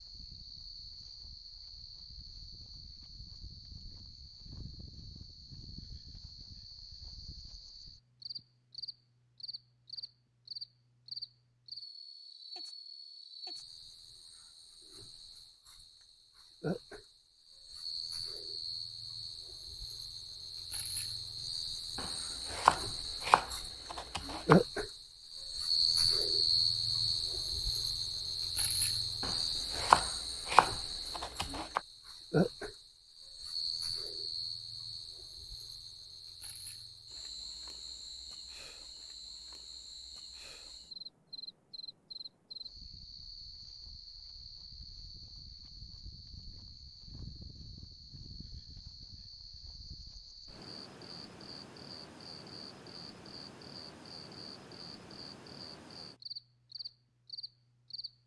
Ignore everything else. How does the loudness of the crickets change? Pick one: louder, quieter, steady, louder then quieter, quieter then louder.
louder then quieter.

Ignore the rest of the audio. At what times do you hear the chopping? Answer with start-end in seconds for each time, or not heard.
21.9-24.6, 29.2-31.8.